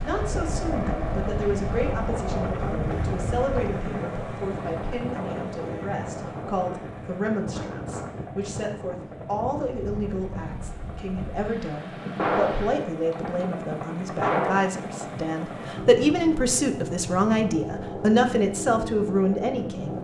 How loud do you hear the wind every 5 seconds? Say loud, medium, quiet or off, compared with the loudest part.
loud, loud, medium, off.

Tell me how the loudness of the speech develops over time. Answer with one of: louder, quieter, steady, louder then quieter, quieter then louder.
louder.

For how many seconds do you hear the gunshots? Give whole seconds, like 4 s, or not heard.
3 s.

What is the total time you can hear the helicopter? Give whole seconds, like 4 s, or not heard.
20 s.